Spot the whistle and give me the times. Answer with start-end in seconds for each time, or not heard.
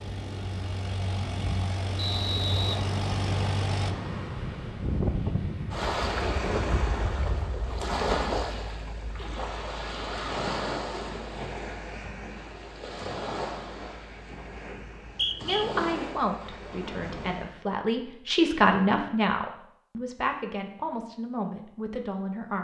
1.9-2.8, 14.9-15.7.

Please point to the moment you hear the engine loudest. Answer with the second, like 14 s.
3 s.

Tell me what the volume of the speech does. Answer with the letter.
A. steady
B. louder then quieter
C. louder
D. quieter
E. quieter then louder
B.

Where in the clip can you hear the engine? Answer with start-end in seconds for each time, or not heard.
0.0-4.0.